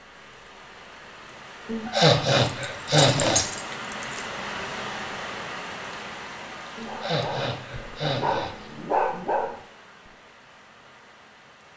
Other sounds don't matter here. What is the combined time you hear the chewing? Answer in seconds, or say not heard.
not heard.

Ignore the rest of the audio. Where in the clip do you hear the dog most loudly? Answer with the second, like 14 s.
9 s.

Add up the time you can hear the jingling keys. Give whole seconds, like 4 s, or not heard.
2 s.